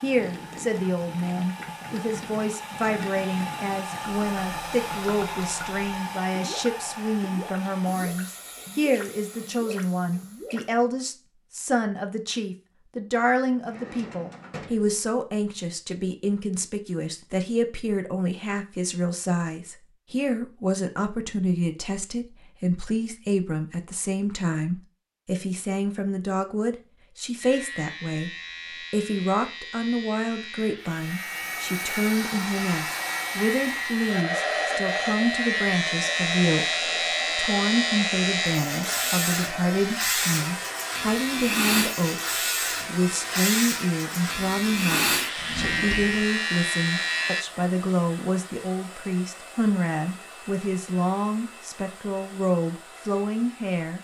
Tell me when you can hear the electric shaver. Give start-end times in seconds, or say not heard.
27.4-47.5.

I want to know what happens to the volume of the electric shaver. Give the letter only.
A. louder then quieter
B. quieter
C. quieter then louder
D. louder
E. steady
D.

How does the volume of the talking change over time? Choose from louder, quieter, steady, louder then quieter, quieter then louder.
steady.